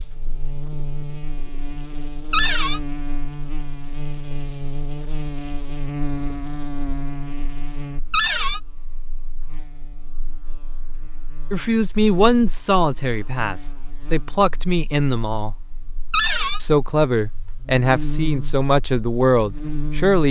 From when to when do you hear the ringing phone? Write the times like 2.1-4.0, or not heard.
not heard.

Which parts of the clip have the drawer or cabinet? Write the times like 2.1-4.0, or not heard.
2.3-2.8, 8.1-8.6, 16.1-16.6.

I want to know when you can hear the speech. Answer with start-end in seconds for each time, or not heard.
11.5-15.6, 16.6-20.2.